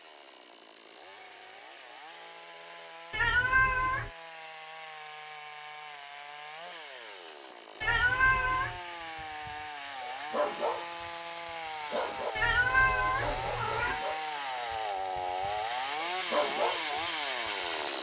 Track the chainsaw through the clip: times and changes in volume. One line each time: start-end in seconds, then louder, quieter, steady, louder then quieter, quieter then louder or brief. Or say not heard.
0.0-17.9 louder.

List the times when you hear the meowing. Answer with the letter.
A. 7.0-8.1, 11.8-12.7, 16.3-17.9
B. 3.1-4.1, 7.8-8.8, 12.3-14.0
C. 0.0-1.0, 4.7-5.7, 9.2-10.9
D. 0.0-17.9
B.